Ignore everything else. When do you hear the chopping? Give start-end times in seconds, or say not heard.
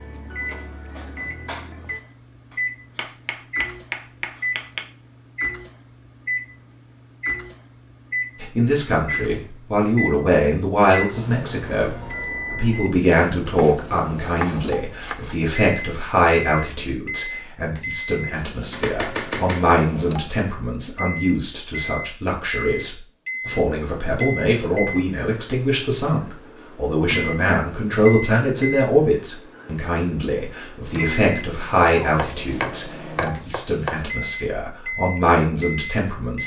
2.5-4.8, 13.4-15.4, 18.7-19.8, 31.9-34.0.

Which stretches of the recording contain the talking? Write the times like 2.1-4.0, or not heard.
8.4-36.4.